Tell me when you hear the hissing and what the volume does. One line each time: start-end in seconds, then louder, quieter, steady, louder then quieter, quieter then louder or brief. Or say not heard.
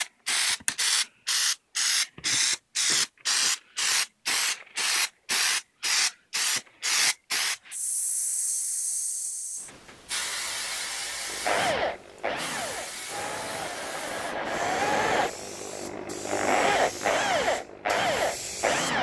0.0-18.9 quieter.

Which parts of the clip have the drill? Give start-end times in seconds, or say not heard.
11.3-18.9.